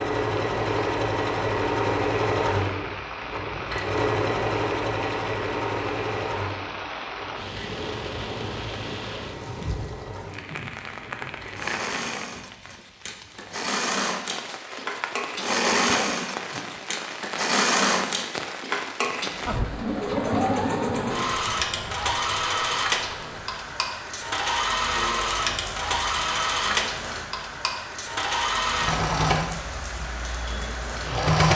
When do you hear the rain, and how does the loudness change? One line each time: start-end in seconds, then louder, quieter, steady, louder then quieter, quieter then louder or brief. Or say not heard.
0.1-31.4 steady.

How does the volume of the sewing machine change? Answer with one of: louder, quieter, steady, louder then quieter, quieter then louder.
quieter then louder.